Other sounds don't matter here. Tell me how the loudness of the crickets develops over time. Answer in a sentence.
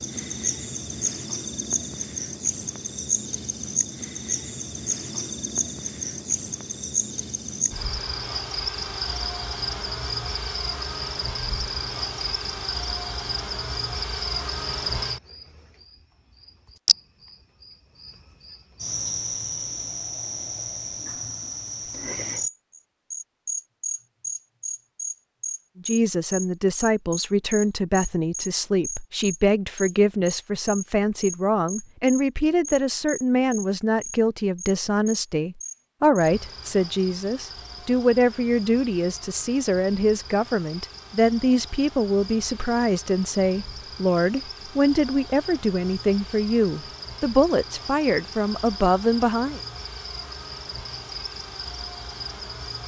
The volume of the crickets goes down.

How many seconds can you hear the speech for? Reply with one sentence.
The speech can be heard for 24 seconds in total.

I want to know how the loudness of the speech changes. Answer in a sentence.
The volume of the speech stays about the same.